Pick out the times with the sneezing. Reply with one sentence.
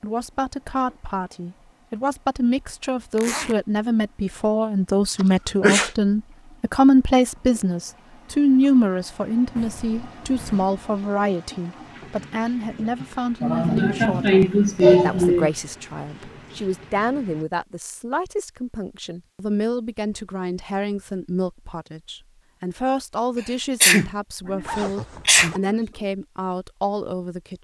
The sneezing can be heard from 5.2 to 5.9 s, from 13.4 to 15.5 s and from 23.8 to 25.6 s.